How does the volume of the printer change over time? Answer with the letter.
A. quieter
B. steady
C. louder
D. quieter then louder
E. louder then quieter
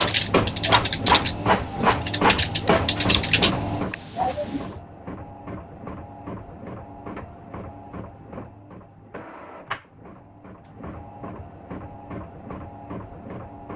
A.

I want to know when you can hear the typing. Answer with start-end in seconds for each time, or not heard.
0.0-4.6.